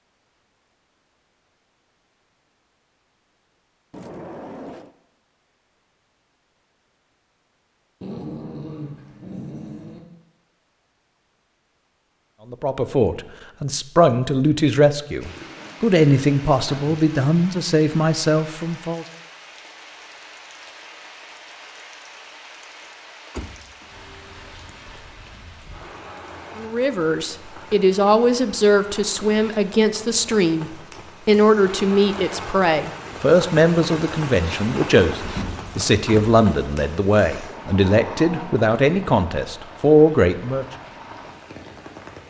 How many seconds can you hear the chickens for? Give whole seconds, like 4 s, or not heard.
not heard.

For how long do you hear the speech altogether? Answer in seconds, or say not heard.
21 s.